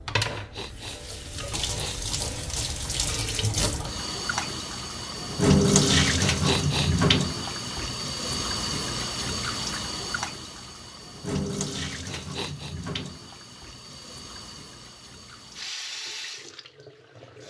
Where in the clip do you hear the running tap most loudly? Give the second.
6 s.